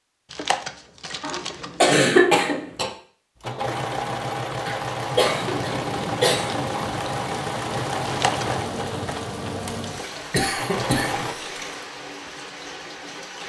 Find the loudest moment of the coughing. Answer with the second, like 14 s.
2 s.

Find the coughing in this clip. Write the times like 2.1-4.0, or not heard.
1.2-2.9, 4.7-6.6, 10.3-11.5.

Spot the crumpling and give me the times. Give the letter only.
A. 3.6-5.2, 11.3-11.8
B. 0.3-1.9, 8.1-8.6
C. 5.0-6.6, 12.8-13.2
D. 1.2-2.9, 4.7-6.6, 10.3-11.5
B.